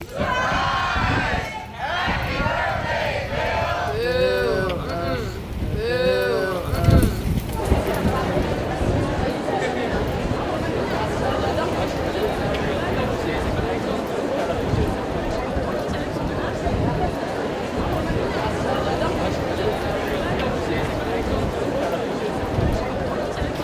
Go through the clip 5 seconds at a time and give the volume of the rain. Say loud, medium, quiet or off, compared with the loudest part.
medium, loud, medium, medium, medium.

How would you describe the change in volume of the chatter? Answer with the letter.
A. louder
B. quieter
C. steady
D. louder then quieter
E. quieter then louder
C.